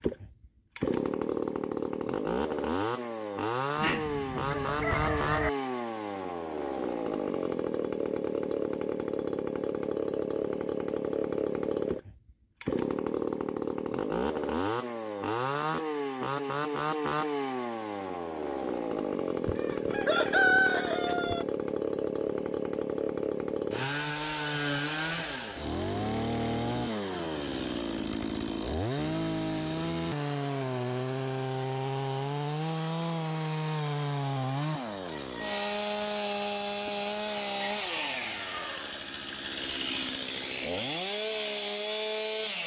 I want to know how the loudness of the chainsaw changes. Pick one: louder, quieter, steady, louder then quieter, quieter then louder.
steady.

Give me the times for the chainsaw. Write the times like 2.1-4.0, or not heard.
0.0-42.6.